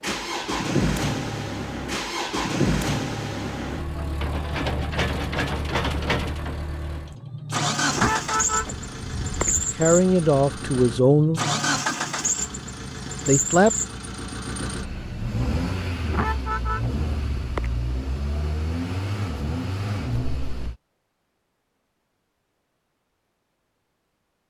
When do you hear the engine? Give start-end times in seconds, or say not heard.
0.0-20.8.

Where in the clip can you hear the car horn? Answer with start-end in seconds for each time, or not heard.
7.8-9.7, 16.0-17.8.